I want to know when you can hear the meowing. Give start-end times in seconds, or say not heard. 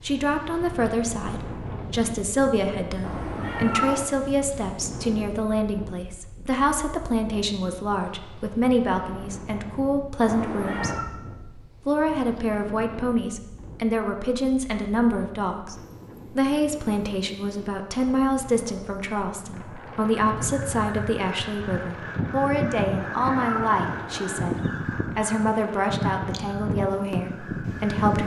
3.0-4.1, 10.2-11.1, 22.9-24.6.